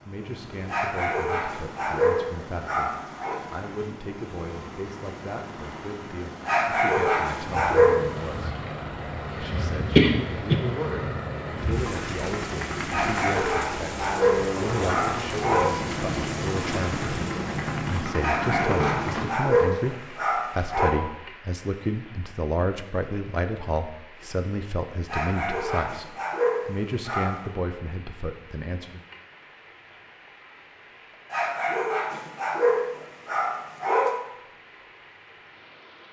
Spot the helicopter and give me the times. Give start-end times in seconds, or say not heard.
0.0-19.2.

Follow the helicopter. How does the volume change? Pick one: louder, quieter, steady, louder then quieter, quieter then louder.
louder.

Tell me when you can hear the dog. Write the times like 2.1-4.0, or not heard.
0.7-3.4, 6.5-8.5, 12.9-15.8, 18.2-20.9, 25.1-27.4, 31.3-34.2.